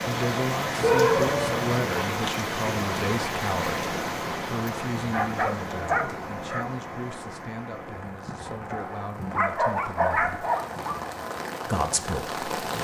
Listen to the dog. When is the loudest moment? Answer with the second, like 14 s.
1 s.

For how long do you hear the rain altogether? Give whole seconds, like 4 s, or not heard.
13 s.